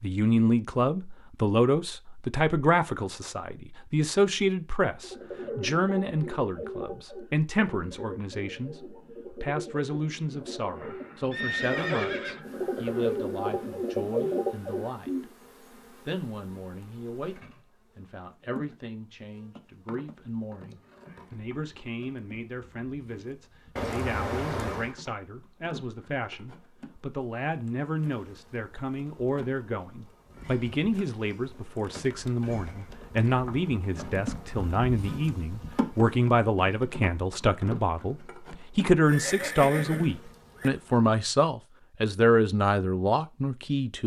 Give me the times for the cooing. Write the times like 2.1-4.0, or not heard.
5.0-15.3.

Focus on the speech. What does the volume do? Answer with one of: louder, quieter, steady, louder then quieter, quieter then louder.
quieter then louder.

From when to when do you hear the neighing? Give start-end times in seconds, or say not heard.
11.3-12.4, 23.8-24.9, 39.0-40.7.